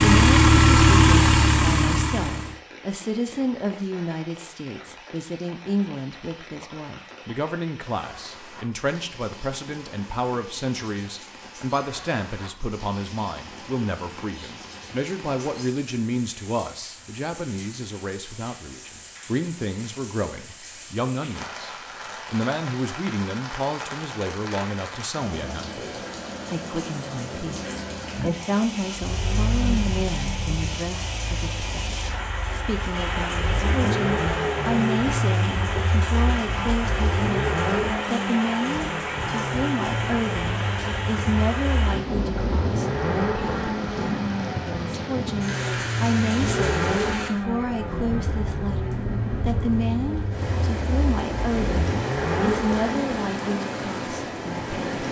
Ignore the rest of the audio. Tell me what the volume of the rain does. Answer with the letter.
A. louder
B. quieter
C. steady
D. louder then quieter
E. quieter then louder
A.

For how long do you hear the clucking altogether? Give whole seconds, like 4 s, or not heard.
not heard.